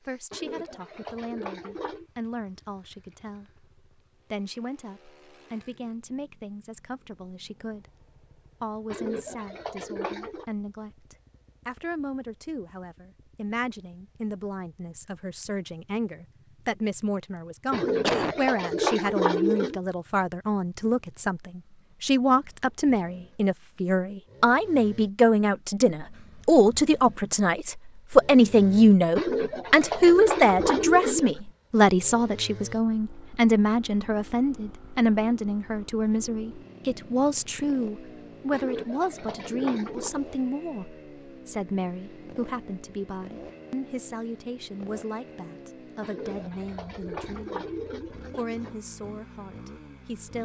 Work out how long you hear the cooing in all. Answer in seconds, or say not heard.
12 s.